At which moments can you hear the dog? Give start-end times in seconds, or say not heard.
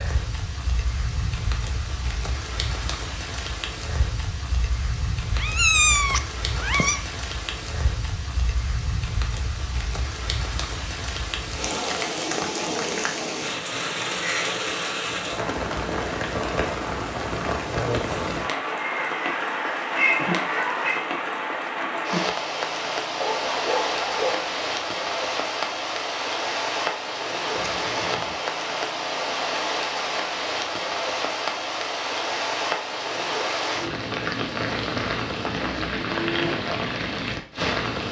23.2-24.5.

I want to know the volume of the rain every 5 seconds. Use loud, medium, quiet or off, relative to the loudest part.
medium, medium, loud, loud, loud, loud, loud, loud.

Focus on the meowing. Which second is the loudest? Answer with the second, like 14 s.
6 s.